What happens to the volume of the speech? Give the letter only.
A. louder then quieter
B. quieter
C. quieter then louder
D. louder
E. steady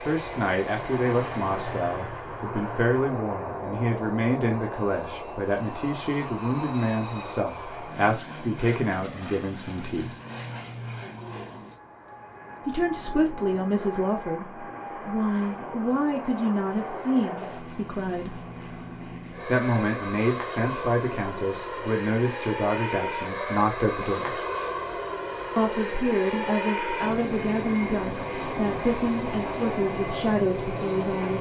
E.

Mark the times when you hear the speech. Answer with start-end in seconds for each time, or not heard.
0.0-10.2, 12.7-18.4, 19.4-24.4, 25.6-31.3.